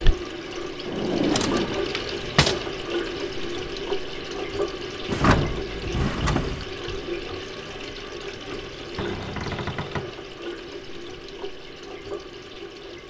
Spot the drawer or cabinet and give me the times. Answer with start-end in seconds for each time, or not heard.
0.8-2.6, 5.0-6.7, 8.9-10.2.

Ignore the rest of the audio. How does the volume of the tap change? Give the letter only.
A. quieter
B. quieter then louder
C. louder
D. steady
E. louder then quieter
A.